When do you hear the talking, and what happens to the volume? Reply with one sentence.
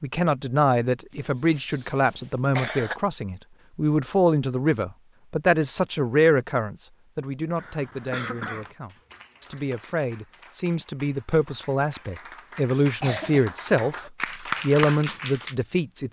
You can hear the talking from 0.0 to 13.9 s, getting quieter then louder; and briefly from 14.6 to 16.0 s.